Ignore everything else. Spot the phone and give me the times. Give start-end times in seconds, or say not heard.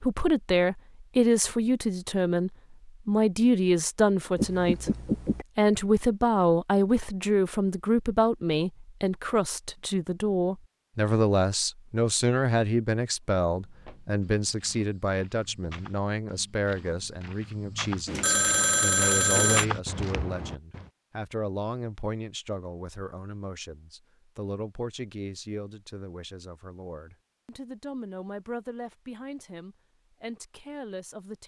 4.3-5.5, 18.1-19.6.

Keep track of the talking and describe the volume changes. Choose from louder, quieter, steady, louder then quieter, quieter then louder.
quieter.